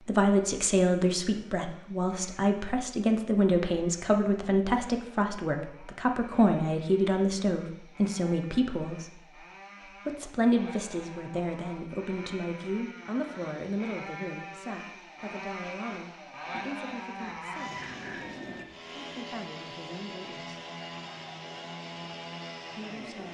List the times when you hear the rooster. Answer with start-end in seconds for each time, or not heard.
17.1-18.7.